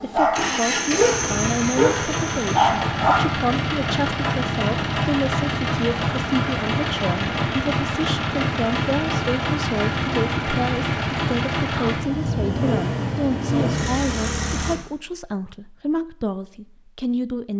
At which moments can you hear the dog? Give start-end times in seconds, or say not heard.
0.0-3.4.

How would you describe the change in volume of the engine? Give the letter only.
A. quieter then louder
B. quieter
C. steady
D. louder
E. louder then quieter
C.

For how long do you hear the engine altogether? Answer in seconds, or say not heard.
15 s.